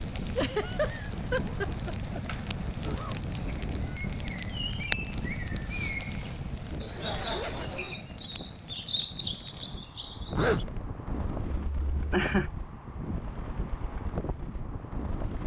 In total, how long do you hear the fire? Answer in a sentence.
You can hear the fire for 10 seconds altogether.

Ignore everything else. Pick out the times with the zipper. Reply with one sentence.
The zipper can be heard from 1.4 to 3.1 s, from 7.1 to 8.0 s and from 10.3 to 10.9 s.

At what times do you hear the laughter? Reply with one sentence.
The laughter can be heard from 0.3 to 2.2 s, from 6.8 to 8.0 s and from 11.7 to 12.5 s.